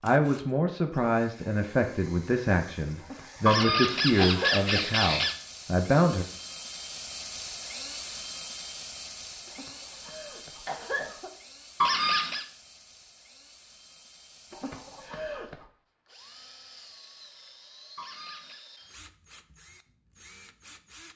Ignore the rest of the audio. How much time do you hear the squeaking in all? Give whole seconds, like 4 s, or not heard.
3 s.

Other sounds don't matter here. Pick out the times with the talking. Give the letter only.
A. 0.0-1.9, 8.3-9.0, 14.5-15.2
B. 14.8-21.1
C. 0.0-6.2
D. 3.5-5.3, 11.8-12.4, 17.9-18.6
C.